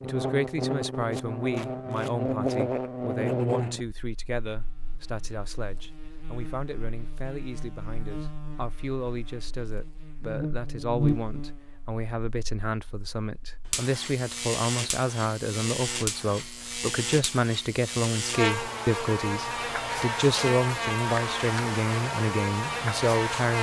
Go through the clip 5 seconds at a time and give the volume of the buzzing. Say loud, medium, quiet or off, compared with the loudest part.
loud, quiet, loud, loud, loud.